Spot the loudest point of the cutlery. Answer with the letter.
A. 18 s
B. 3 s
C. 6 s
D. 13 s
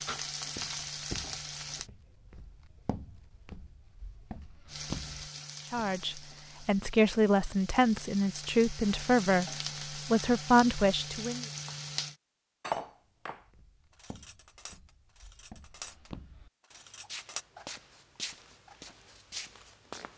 D.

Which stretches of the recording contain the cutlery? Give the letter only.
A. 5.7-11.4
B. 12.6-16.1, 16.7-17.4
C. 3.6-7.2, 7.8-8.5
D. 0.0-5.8
B.